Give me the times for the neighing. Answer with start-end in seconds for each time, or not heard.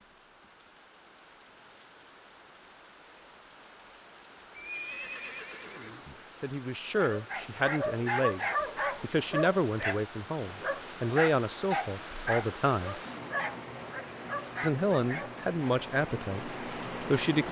4.5-6.2.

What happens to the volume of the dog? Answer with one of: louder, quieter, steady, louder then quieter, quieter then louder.
quieter.